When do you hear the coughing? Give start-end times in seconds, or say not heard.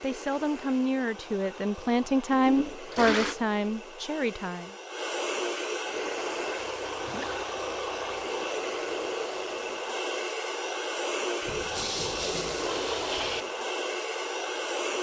not heard.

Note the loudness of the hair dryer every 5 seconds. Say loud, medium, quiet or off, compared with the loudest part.
medium, loud, loud.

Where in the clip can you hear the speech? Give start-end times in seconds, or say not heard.
0.0-4.8.